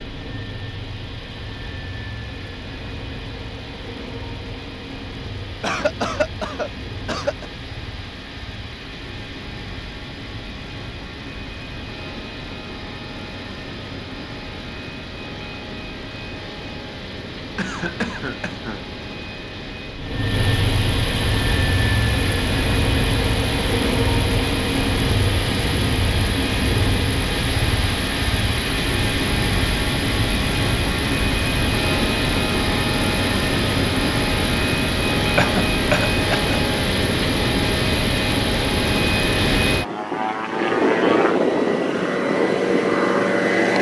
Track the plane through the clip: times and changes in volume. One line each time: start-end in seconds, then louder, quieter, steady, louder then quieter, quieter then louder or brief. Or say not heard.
0.0-43.7 louder.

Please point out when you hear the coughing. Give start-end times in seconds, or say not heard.
5.6-7.5, 17.6-18.9, 35.4-36.5.